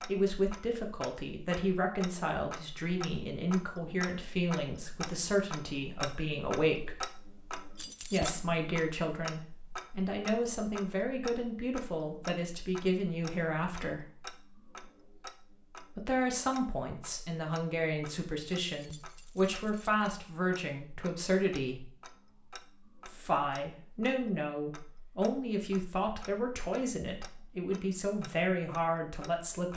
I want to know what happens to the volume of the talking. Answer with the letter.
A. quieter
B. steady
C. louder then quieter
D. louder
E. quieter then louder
B.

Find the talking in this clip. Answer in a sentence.
The talking can be heard from 0.1 to 7.0 s, from 8.0 to 14.1 s, from 15.9 to 21.9 s and from 23.1 to 29.7 s.